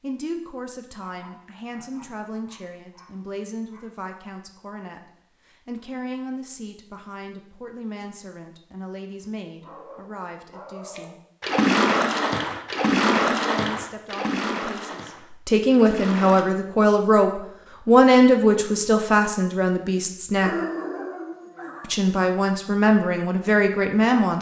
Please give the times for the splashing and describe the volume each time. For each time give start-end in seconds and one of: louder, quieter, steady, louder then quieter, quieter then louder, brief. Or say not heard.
10.9-16.4 quieter.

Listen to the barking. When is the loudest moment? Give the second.
21 s.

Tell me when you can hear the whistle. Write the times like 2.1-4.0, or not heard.
not heard.